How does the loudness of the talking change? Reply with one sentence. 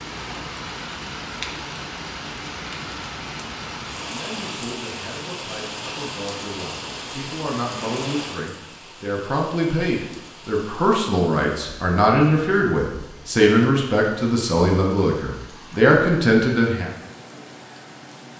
The volume of the talking goes up.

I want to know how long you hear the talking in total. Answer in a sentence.
The talking can be heard for 13 seconds in total.